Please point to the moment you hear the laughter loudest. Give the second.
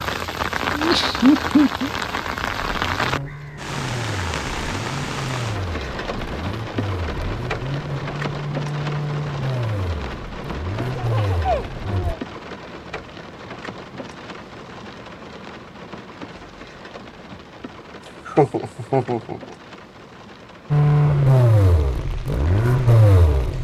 1 s.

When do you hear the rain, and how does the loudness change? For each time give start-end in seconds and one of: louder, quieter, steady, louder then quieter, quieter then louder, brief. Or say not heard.
0.0-23.5 quieter.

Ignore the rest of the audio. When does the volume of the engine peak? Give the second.
21 s.